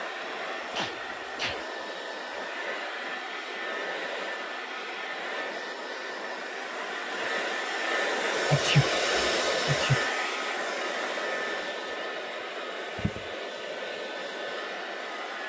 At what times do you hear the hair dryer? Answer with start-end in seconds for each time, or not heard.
0.0-15.4.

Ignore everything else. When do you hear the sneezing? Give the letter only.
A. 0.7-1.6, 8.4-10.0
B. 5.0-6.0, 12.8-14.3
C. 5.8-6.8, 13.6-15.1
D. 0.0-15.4
A.